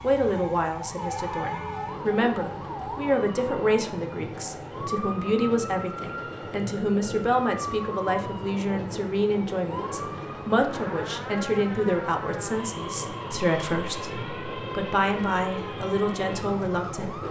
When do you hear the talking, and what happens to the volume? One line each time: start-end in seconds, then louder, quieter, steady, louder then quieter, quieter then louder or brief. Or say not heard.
0.0-17.2 steady.